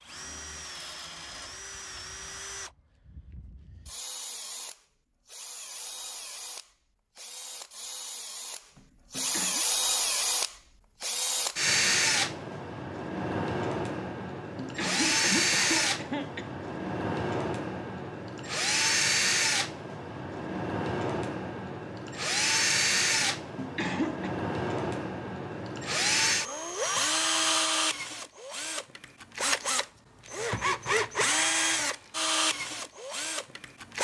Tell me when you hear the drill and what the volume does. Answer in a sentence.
The drill can be heard from 0.0 to 33.9 s, getting louder.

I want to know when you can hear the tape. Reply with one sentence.
The tape can't be heard in this clip.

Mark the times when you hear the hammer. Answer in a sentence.
You can't hear the hammer here.